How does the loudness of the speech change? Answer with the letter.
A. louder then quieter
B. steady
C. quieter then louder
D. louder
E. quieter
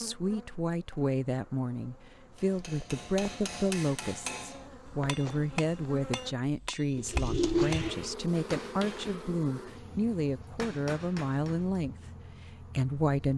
B.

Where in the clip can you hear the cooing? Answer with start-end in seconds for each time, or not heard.
7.0-8.1.